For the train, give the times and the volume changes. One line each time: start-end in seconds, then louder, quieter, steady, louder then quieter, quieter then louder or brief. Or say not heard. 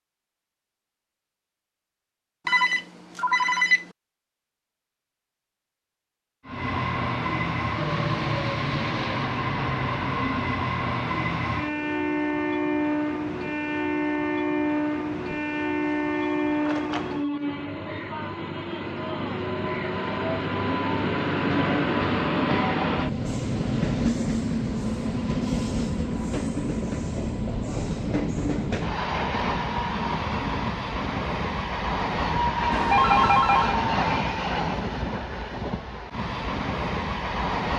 6.5-37.7 steady.